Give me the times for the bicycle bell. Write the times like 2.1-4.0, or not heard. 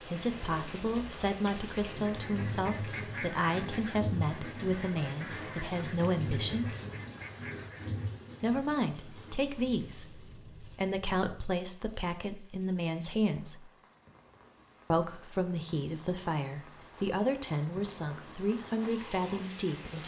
not heard.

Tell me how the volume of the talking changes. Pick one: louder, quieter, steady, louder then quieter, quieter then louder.
steady.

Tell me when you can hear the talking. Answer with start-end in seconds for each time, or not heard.
0.0-6.8, 8.4-13.7, 14.9-20.0.